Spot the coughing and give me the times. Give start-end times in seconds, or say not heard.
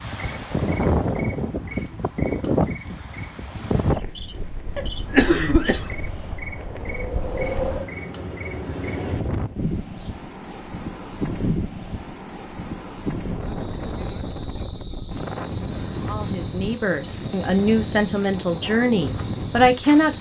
4.9-6.5.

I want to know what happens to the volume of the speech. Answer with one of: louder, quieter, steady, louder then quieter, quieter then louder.
louder.